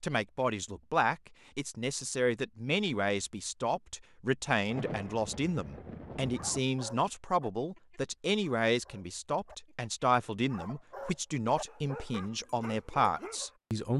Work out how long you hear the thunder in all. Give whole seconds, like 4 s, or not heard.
2 s.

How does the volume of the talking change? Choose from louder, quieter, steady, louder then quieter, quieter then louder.
steady.